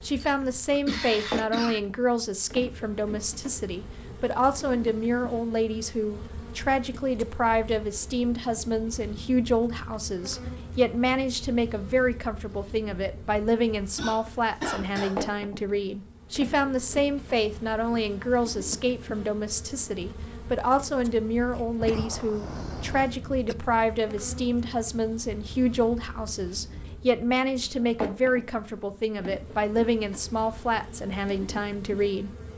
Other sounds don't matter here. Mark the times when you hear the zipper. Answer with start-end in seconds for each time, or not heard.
not heard.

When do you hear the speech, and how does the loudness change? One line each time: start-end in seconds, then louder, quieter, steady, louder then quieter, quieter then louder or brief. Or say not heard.
0.0-32.3 steady.